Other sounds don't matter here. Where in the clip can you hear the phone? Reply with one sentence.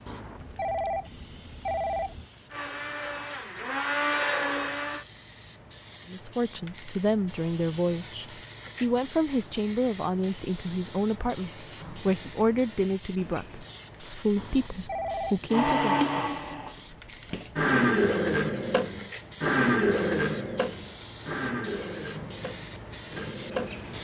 You can hear the phone from 0.1 to 2.3 s and from 14.3 to 15.5 s.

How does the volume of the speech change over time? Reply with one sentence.
The volume of the speech stays about the same.